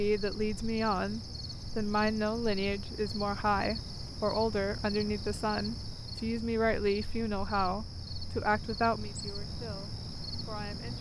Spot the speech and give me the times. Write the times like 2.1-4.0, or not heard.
0.0-10.9.